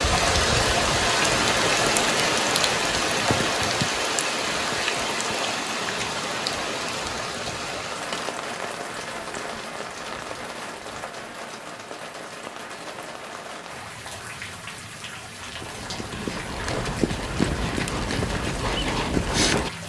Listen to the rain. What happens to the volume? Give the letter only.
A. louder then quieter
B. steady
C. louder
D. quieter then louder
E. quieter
E.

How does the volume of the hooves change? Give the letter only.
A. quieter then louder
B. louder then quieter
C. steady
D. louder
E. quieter
D.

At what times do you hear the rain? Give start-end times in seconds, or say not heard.
0.0-19.8.